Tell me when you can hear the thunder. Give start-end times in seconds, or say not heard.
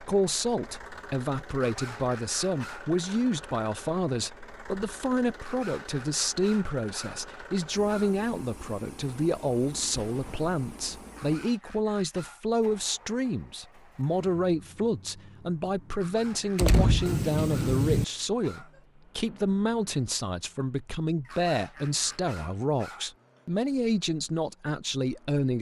9.9-11.1, 16.6-18.1.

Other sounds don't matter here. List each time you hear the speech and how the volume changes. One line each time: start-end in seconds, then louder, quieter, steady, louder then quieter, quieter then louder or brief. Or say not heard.
0.0-25.5 steady.